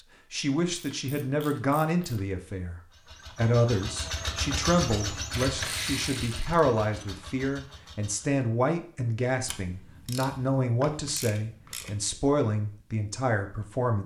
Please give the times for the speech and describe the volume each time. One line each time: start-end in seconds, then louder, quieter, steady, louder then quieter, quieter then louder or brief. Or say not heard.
0.3-14.0 steady.